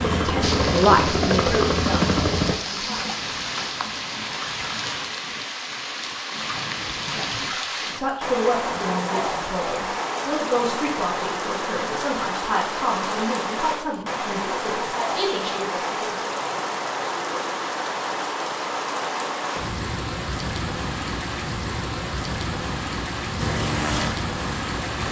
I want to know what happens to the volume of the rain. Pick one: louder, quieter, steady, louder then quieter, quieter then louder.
steady.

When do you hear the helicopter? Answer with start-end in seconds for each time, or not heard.
0.0-2.5, 23.4-25.0.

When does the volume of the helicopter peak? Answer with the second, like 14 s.
2 s.